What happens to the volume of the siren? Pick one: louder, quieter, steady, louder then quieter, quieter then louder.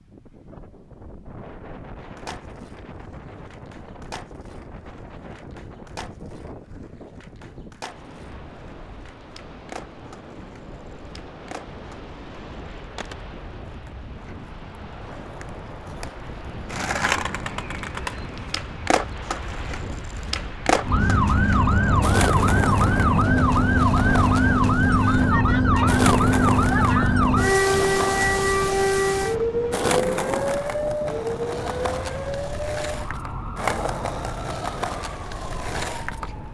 quieter.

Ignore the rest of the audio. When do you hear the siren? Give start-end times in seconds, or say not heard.
20.9-36.4.